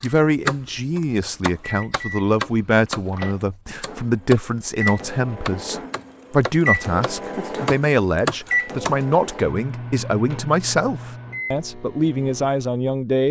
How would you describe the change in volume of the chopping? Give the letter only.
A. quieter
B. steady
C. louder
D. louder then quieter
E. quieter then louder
E.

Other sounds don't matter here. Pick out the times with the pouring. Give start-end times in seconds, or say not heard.
not heard.